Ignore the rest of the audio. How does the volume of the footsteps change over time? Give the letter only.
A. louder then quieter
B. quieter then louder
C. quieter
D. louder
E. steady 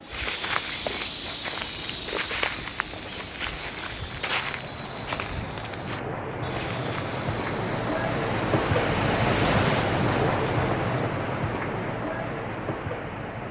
C.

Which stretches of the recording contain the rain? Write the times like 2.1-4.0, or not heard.
0.0-13.4.